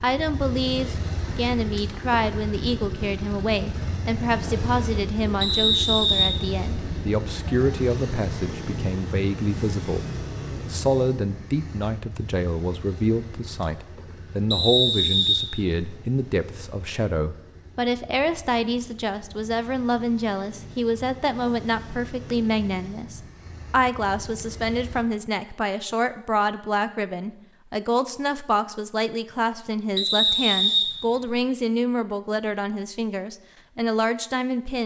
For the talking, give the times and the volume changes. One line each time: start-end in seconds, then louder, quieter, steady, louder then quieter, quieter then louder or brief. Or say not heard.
0.0-34.8 steady.